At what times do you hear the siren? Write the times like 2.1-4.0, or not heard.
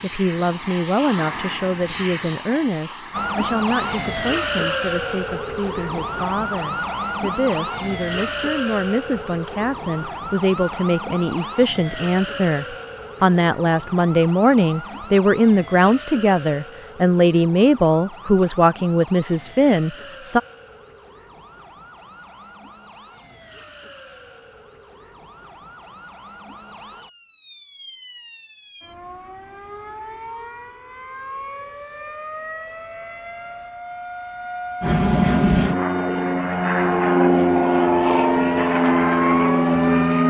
3.1-40.2.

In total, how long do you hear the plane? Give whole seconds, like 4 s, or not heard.
10 s.